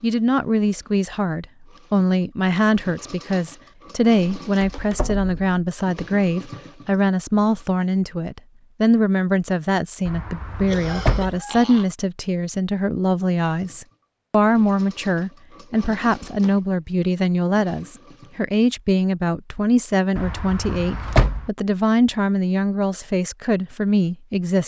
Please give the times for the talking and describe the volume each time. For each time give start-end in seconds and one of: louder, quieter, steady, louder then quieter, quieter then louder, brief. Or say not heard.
0.0-24.6 steady.